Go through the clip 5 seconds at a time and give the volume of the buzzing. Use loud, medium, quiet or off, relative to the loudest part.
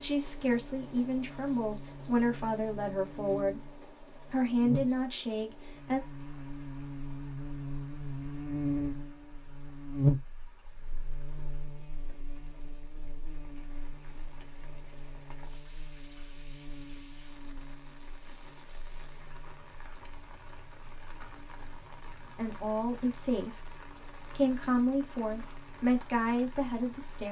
medium, loud, loud, quiet, quiet, quiet.